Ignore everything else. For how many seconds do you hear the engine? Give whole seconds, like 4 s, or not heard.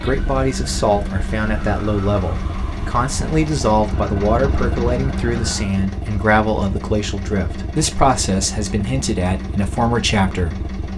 11 s.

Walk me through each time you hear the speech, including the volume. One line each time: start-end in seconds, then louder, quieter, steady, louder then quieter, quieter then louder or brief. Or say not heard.
0.0-10.7 steady.